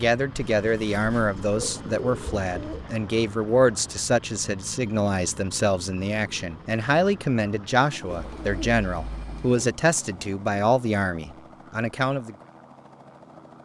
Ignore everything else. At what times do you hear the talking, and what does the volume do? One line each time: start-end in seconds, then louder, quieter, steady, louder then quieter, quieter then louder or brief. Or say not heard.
0.0-12.3 steady.